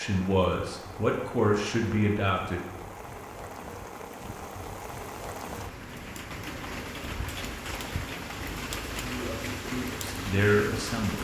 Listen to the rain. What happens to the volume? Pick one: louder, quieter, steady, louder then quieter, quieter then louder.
louder.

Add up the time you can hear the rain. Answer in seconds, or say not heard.
11 s.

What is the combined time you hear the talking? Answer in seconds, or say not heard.
5 s.